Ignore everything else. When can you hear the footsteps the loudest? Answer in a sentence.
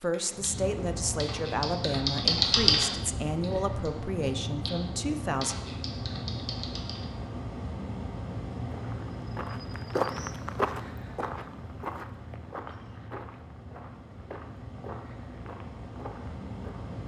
The loudest moment of the footsteps is at 10 seconds.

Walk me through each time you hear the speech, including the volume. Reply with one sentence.
You can hear the speech from 0.0 to 5.5 s, at a steady volume.